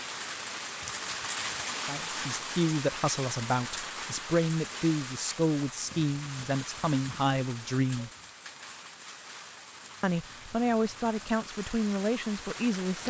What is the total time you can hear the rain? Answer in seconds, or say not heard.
13 s.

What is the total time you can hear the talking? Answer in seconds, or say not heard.
9 s.